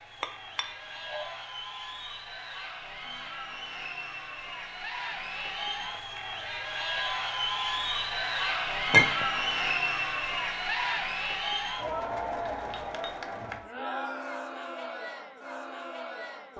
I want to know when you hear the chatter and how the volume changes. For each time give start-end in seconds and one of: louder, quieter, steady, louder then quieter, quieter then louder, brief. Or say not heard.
0.0-16.5 louder then quieter.